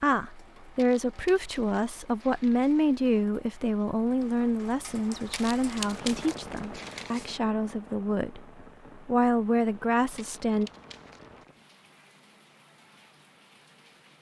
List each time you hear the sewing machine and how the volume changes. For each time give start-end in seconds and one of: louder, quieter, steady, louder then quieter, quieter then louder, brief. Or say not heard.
not heard.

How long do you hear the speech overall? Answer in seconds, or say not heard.
11 s.